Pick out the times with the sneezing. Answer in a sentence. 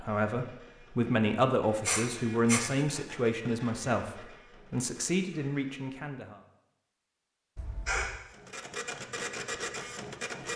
The sneezing can be heard from 1.9 to 2.6 s and from 7.5 to 8.2 s.